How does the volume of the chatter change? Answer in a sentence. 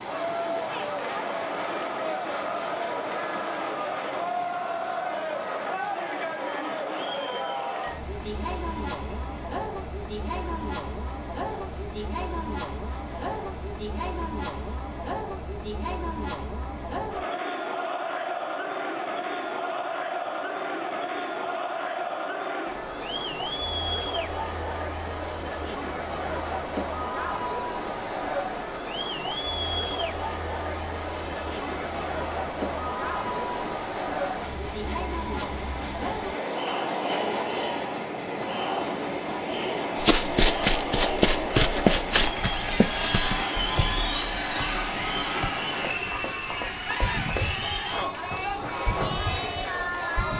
The loudness of the chatter stays about the same.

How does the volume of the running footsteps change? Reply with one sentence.
The loudness of the running footsteps goes down.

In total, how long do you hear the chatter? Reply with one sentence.
You can hear the chatter for 50 seconds altogether.